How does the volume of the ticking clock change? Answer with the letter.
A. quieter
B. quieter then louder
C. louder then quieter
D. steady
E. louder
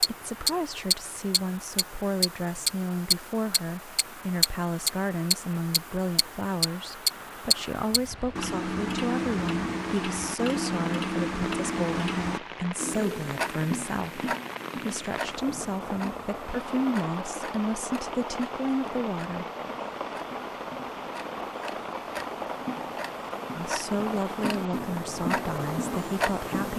B.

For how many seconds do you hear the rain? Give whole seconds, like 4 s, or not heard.
27 s.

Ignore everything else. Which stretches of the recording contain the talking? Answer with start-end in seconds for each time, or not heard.
0.0-19.4, 23.6-26.7.